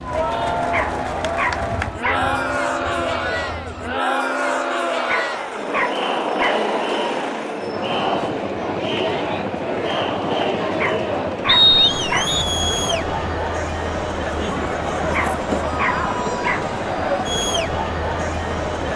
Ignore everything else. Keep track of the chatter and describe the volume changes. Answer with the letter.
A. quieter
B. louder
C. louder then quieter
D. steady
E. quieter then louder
D.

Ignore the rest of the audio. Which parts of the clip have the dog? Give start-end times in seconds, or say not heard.
0.7-2.2, 5.0-6.7, 10.8-12.3, 15.1-16.6.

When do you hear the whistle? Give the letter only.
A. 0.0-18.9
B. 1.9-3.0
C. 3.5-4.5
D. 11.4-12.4
D.